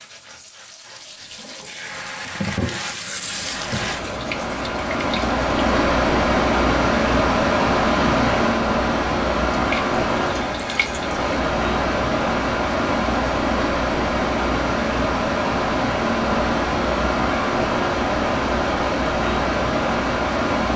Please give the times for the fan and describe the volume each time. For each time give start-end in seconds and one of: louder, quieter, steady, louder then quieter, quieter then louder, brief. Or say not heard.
3.1-20.7 steady.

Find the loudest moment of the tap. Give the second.
3 s.